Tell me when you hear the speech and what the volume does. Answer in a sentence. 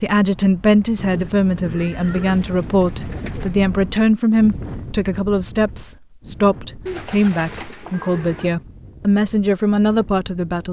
You can hear the speech from 0.0 to 10.6 s, at a steady volume.